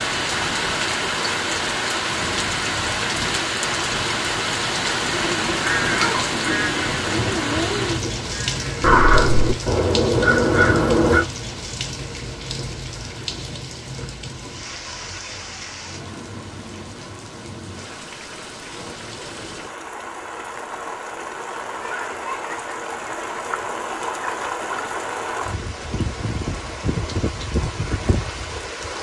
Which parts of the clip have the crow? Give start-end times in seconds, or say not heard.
5.6-11.2.